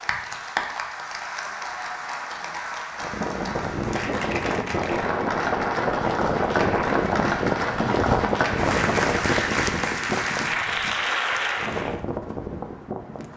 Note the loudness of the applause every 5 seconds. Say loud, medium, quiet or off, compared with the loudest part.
medium, loud, loud.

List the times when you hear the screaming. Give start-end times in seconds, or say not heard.
not heard.